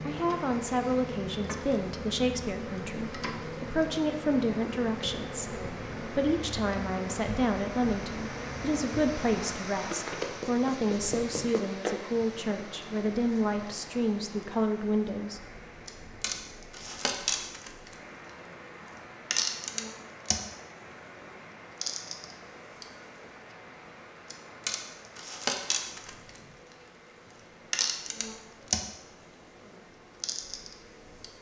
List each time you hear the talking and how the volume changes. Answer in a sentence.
You can hear the talking from 0.0 to 15.4 s, at a steady volume.